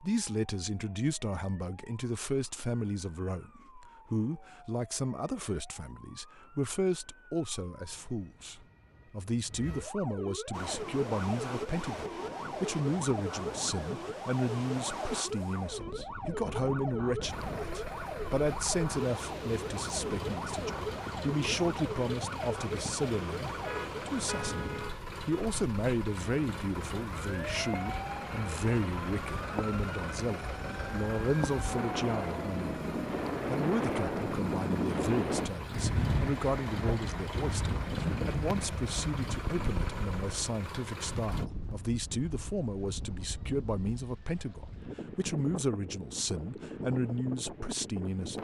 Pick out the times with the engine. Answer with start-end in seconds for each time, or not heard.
17.2-41.5.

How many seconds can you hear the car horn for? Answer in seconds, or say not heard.
2 s.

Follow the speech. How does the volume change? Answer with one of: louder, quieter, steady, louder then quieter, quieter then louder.
steady.